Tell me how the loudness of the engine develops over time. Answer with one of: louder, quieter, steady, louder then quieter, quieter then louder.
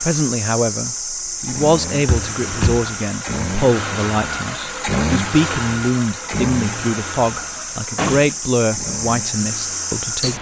louder then quieter.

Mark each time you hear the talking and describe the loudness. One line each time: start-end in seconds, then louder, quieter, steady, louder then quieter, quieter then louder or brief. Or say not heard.
0.0-10.3 steady.